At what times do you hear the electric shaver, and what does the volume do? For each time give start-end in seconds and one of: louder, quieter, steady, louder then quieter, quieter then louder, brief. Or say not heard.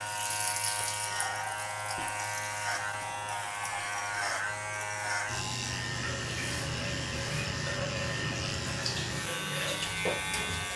0.0-10.7 steady.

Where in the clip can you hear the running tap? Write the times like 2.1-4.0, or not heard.
0.0-10.7.